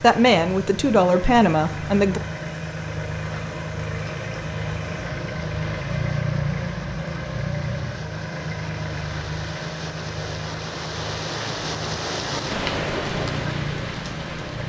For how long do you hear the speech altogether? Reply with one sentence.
The speech can be heard for 2 seconds in total.